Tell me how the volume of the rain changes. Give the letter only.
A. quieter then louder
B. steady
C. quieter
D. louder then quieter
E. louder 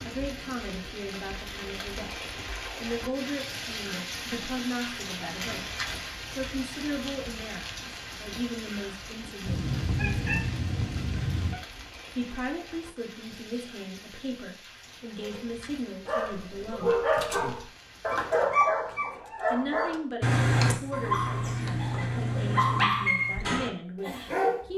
C.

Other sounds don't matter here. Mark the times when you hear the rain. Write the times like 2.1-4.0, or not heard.
0.0-18.5.